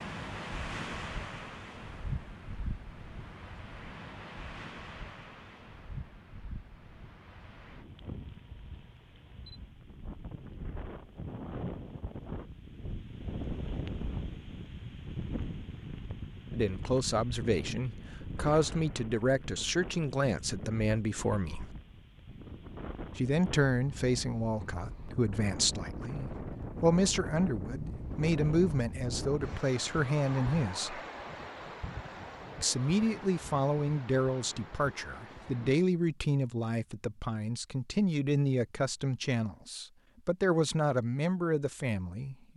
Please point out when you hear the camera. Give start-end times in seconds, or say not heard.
8.1-9.8.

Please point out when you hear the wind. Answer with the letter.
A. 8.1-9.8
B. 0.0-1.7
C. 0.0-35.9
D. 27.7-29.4
C.